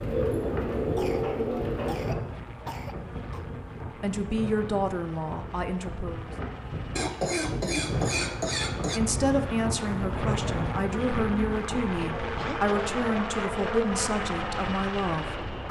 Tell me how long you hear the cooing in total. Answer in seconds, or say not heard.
2 s.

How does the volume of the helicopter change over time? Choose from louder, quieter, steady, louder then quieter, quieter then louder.
louder.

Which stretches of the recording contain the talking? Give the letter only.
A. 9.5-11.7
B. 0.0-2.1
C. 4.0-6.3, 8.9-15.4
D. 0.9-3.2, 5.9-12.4
C.